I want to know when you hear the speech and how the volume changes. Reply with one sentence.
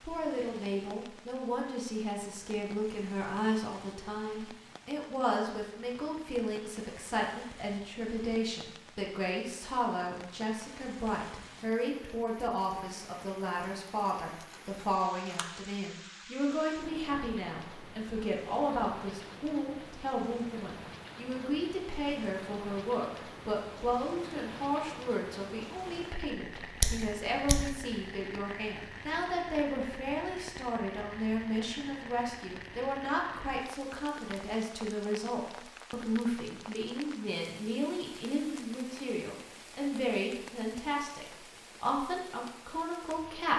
The speech can be heard from 0.0 to 43.5 s, at a steady volume.